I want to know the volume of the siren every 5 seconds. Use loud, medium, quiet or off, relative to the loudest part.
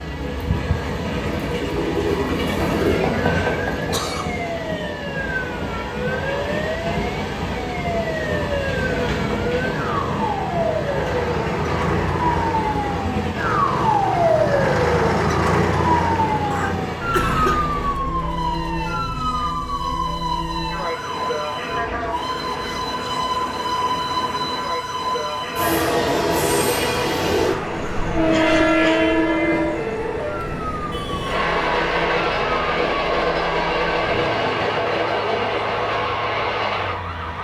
medium, medium, loud, loud, medium, medium, medium, medium.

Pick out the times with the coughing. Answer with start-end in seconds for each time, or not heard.
3.9-4.4, 16.5-17.6, 28.3-29.1.